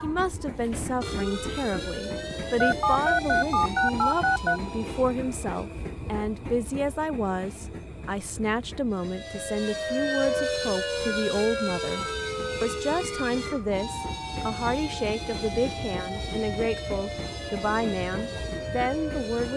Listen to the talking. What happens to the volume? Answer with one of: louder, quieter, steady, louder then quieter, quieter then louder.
steady.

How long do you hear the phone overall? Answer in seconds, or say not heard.
2 s.